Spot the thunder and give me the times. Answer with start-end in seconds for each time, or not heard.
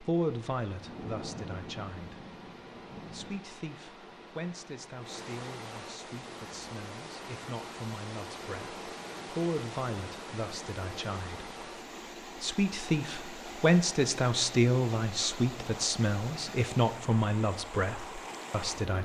0.8-3.5.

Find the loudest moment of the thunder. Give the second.
1 s.